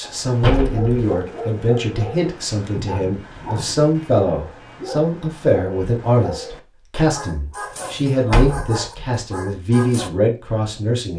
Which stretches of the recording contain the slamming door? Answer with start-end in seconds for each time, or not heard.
0.4-1.1, 8.1-9.1.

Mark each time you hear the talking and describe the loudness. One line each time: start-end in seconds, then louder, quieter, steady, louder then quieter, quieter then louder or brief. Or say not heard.
0.0-11.1 steady.